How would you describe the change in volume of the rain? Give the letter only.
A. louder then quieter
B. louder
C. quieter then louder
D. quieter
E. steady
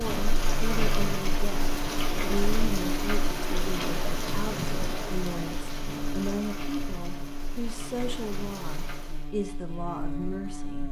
D.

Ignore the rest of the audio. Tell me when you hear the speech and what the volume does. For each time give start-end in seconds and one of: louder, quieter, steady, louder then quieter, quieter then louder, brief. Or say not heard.
0.0-10.8 steady.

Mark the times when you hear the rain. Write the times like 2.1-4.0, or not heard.
0.0-9.3.